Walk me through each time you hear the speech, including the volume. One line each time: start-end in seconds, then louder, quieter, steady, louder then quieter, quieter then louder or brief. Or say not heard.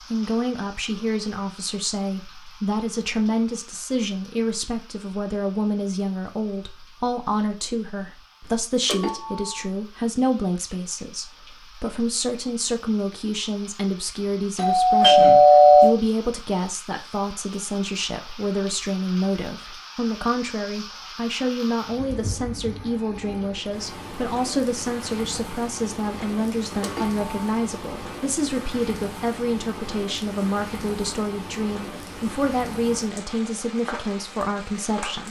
0.1-35.2 steady.